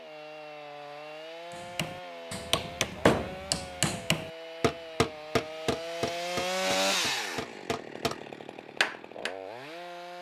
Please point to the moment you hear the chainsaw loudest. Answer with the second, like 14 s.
7 s.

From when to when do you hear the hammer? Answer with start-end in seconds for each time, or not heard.
1.5-8.2, 8.8-9.3.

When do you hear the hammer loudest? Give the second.
3 s.